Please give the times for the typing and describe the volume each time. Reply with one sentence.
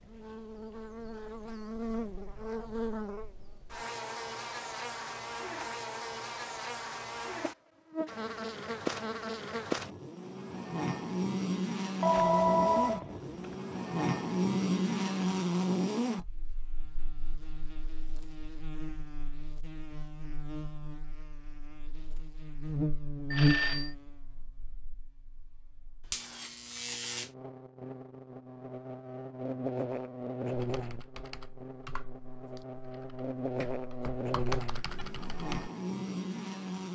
The typing can be heard from 30.5 to 35.7 s, getting quieter then louder.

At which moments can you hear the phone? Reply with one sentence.
The phone can be heard from 12.0 to 13.4 s and from 23.3 to 23.9 s.